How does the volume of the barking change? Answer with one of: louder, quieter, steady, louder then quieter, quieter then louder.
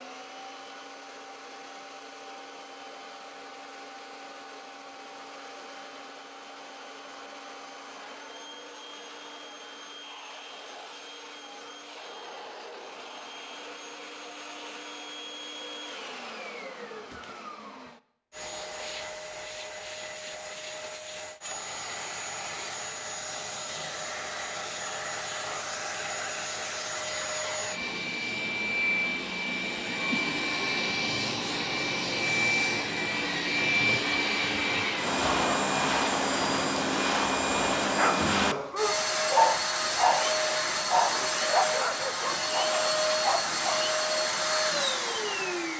louder then quieter.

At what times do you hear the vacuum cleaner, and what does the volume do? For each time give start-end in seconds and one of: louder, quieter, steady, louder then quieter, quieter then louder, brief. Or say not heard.
0.0-45.7 louder.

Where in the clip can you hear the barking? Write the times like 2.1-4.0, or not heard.
38.0-43.8.